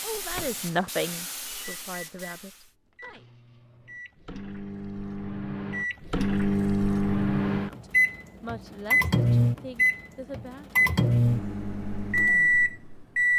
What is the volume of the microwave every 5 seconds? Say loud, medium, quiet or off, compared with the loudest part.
quiet, loud, loud.